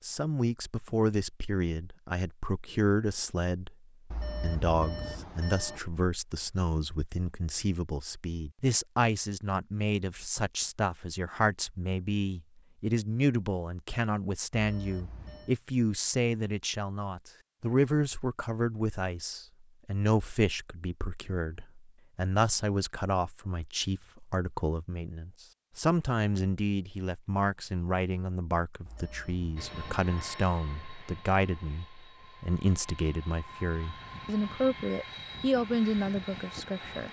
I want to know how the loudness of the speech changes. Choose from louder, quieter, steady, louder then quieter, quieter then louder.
steady.